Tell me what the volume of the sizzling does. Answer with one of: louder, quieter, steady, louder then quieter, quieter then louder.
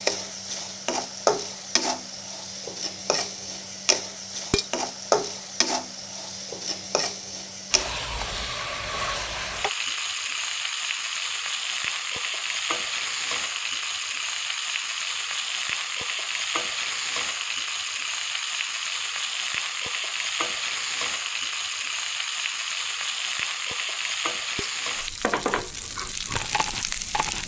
steady.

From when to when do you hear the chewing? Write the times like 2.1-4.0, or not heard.
25.8-27.4.